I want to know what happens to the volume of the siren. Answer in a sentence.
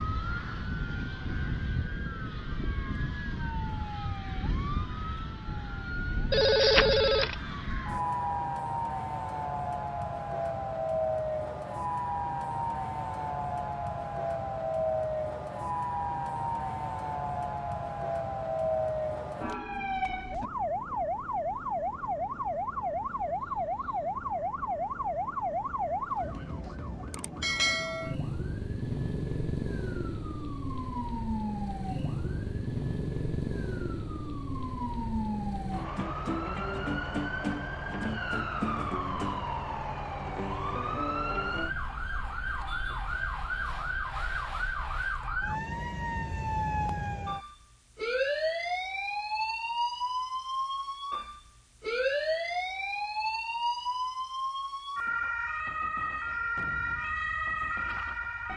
The loudness of the siren stays about the same.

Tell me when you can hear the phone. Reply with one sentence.
The phone can be heard from 6.3 to 7.3 s.